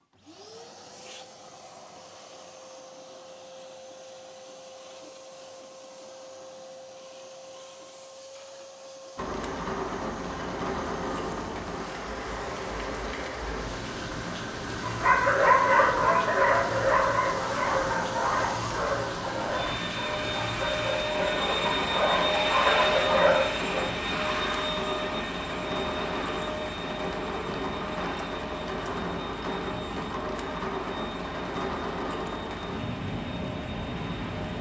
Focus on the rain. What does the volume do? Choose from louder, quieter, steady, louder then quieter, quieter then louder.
steady.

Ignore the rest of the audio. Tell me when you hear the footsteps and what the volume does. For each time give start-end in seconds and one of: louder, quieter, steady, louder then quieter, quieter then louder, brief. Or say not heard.
not heard.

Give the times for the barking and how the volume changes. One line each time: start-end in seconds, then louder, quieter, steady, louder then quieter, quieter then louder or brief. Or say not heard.
14.8-23.9 quieter then louder.